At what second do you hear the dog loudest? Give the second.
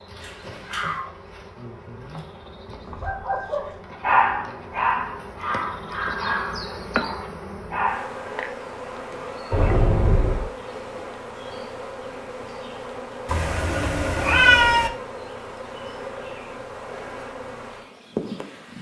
4 s.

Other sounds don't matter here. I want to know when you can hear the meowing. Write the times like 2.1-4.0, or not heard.
0.2-1.1, 9.5-10.5, 13.2-14.9.